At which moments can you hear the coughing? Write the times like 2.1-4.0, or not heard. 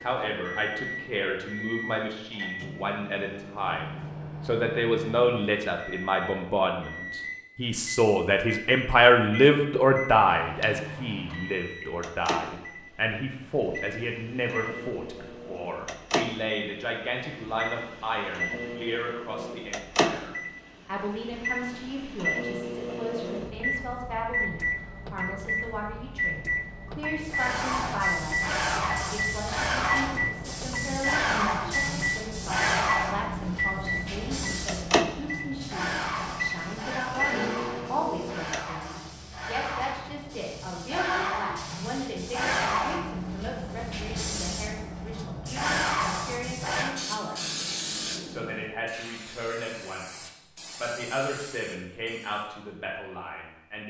not heard.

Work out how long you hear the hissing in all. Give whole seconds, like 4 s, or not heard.
25 s.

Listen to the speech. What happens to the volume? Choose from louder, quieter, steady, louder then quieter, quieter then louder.
quieter.